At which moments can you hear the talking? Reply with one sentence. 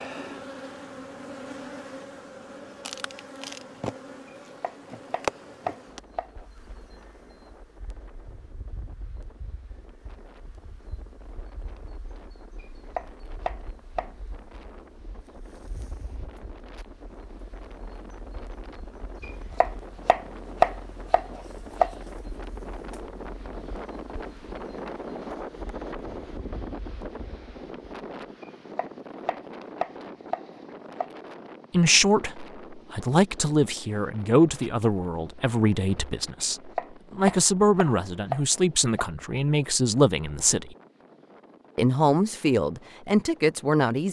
The talking can be heard from 31.7 to 40.8 s and from 41.8 to 44.0 s.